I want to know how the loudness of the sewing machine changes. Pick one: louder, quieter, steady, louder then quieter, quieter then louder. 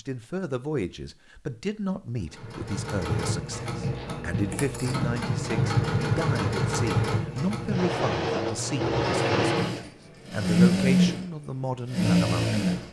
louder.